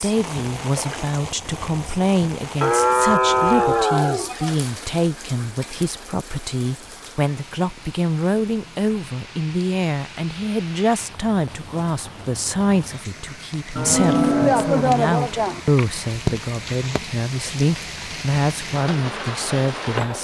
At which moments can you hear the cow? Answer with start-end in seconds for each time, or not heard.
2.6-4.5, 13.8-15.6.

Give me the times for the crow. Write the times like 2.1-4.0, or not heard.
not heard.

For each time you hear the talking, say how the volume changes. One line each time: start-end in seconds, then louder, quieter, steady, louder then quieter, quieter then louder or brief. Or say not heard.
0.0-20.1 steady.